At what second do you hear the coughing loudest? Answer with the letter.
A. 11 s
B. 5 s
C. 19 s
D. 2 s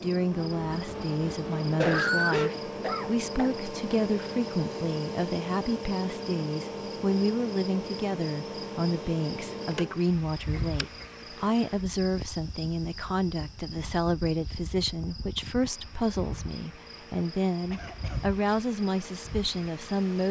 D.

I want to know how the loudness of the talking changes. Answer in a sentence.
The volume of the talking stays about the same.